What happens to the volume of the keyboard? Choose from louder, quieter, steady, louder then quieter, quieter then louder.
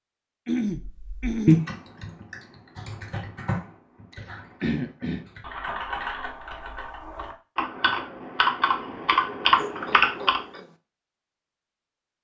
quieter then louder.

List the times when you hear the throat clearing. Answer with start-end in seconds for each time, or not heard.
0.5-1.6, 4.6-5.2, 9.6-10.8.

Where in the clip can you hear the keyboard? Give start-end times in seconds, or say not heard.
1.0-10.4.